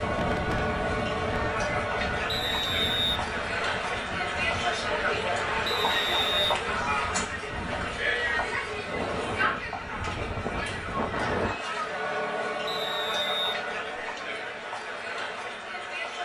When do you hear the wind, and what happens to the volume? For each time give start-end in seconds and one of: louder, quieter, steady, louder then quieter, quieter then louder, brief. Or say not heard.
0.0-11.6 quieter then louder.